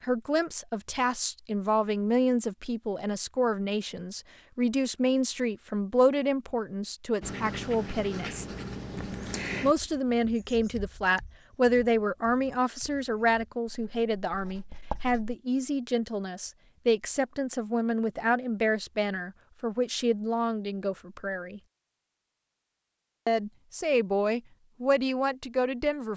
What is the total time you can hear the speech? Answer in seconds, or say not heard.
23 s.